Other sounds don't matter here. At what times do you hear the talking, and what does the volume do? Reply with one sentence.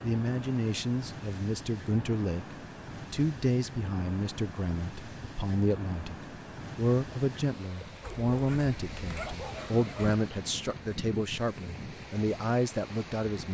You can hear the talking from 0.0 to 13.4 s, at a steady volume.